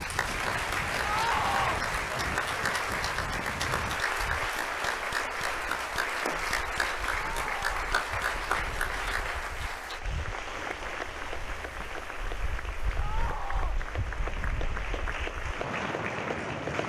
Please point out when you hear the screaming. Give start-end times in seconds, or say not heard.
1.0-1.8, 7.3-7.8, 12.9-13.8.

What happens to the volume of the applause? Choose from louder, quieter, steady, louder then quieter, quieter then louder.
quieter.